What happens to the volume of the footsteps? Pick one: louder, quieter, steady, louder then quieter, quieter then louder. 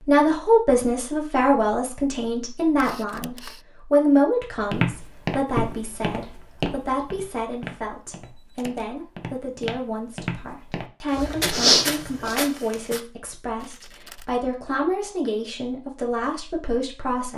quieter then louder.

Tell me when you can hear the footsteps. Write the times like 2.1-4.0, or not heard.
4.7-13.0.